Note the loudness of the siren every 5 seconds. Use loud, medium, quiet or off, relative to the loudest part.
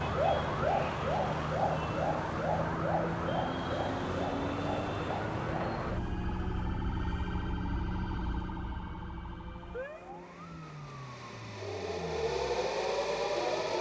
loud, medium, loud.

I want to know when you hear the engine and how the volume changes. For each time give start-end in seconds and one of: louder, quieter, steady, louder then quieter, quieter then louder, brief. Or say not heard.
0.0-13.7 quieter then louder.